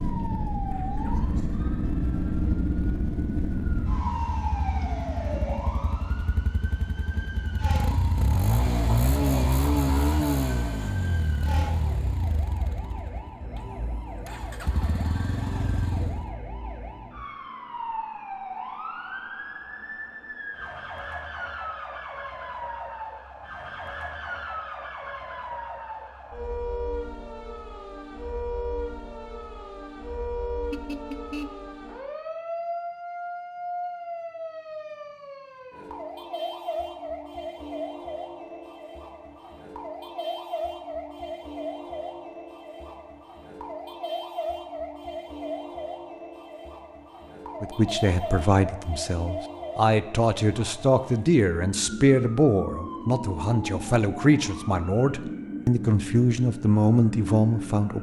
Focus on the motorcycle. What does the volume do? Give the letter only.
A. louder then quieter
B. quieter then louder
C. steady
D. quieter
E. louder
A.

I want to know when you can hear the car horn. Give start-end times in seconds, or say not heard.
30.7-31.7.